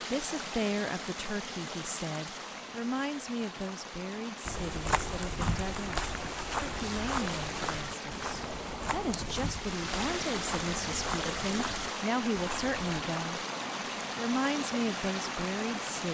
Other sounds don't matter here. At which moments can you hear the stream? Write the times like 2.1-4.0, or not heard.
0.0-16.0.